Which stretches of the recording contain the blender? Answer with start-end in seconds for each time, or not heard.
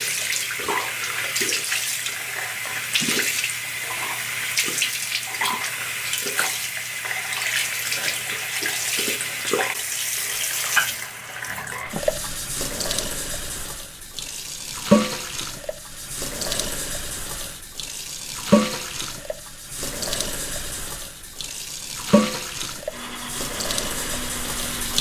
22.9-24.9.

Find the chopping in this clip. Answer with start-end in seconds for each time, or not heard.
not heard.